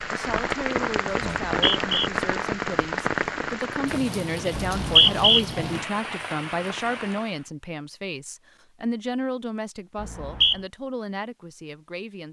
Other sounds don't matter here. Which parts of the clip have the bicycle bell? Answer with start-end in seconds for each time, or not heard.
not heard.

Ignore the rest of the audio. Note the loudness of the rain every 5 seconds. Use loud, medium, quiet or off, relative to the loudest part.
loud, medium, off.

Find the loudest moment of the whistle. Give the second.
5 s.